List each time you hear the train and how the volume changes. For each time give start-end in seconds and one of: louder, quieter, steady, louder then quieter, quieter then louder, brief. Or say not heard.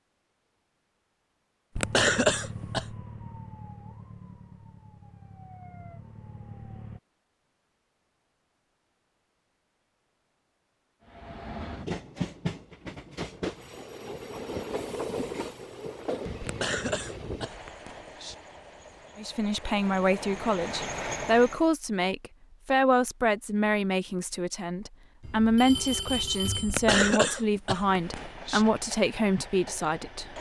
11.1-21.6 quieter then louder
27.8-30.3 brief.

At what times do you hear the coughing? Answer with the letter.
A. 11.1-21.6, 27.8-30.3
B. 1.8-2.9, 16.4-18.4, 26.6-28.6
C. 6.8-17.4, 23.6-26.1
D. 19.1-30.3
B.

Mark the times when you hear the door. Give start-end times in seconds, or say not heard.
not heard.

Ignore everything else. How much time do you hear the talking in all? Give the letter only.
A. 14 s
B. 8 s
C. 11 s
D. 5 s
C.